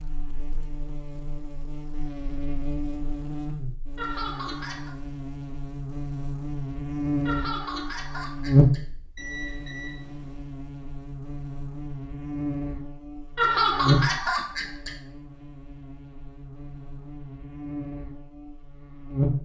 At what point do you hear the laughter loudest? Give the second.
14 s.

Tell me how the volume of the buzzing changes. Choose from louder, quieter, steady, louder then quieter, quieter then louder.
louder then quieter.